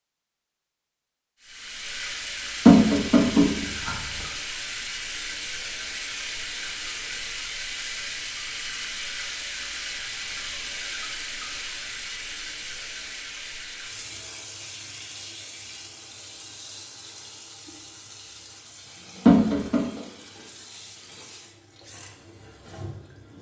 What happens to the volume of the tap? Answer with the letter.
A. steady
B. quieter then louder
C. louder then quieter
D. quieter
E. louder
D.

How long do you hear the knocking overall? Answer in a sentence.
The knocking can be heard for 2 seconds in total.